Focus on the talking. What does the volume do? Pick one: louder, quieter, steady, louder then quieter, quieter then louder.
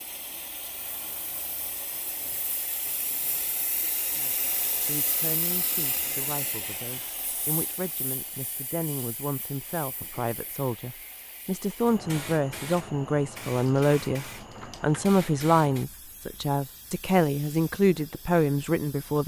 louder.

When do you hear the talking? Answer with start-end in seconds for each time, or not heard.
4.1-19.2.